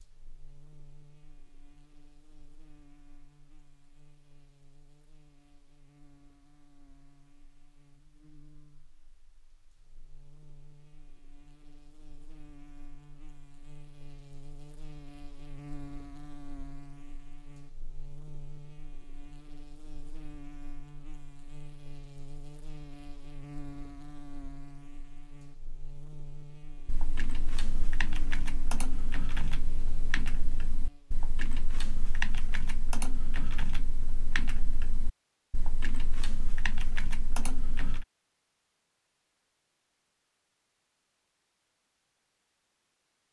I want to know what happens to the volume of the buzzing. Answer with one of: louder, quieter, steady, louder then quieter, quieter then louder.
louder.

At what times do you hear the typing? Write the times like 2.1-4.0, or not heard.
26.9-38.0.